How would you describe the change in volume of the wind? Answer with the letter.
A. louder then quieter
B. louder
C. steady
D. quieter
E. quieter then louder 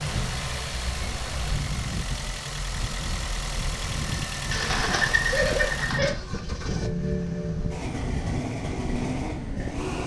C.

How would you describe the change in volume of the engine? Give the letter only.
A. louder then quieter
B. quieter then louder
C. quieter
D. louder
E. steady
E.